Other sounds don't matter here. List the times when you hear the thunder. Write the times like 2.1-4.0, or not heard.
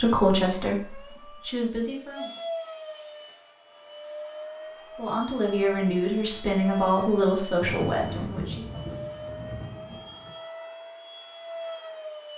7.2-10.3.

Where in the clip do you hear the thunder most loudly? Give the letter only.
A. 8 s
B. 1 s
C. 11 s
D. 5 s
A.